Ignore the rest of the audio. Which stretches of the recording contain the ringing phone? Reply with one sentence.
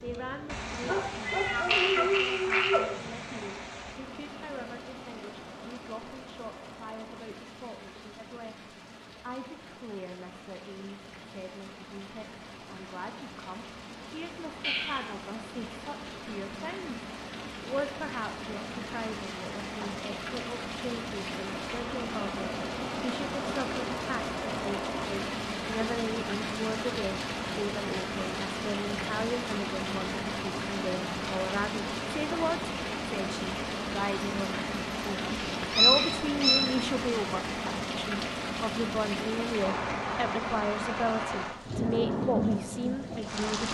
The ringing phone can't be heard in this clip.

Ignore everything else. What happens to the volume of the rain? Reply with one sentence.
The volume of the rain goes up.